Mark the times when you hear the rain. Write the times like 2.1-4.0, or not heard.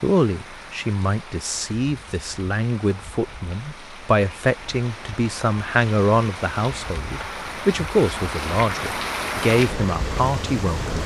0.0-11.0.